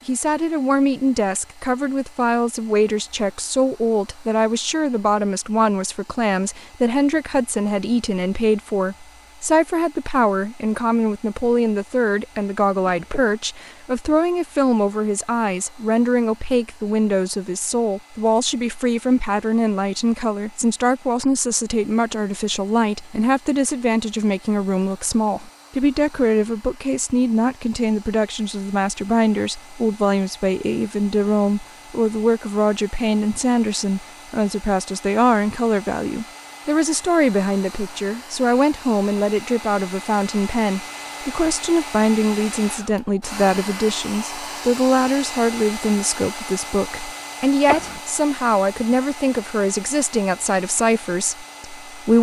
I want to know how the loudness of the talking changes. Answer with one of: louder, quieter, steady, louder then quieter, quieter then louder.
steady.